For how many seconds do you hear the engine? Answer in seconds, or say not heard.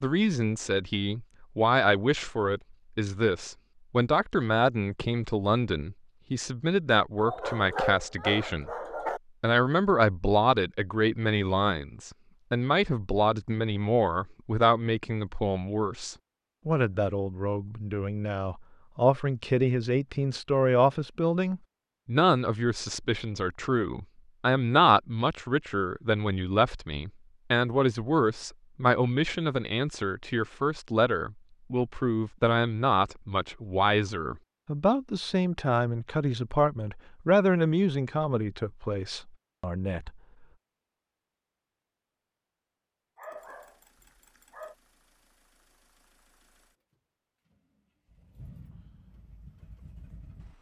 7 s.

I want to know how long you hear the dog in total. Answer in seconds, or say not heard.
4 s.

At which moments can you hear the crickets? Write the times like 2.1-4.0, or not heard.
not heard.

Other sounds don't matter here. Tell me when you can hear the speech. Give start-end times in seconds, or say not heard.
0.0-8.7, 9.4-40.1.